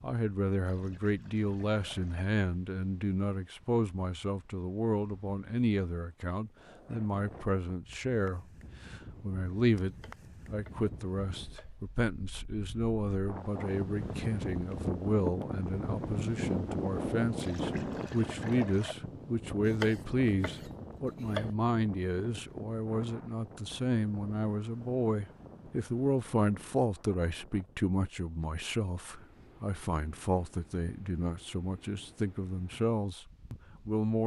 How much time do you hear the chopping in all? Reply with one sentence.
The chopping can be heard for 4 seconds in total.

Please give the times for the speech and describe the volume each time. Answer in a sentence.
You can hear the speech from 0.0 to 34.2 s, at a steady volume.